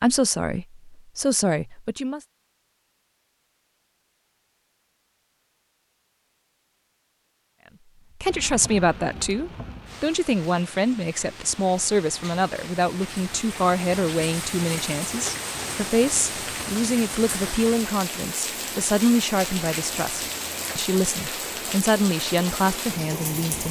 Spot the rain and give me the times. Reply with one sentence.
The rain can be heard from 8.2 to 23.6 s.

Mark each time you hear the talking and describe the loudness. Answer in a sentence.
You can hear the talking briefly from 0.0 to 2.2 s; and from 8.2 to 23.6 s, at a steady volume.